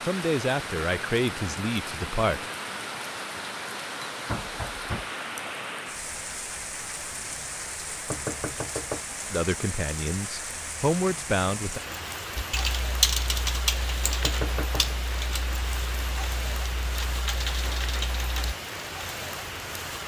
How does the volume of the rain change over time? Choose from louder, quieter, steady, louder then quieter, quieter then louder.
steady.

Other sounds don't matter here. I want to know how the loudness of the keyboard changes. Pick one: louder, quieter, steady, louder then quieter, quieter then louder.
quieter then louder.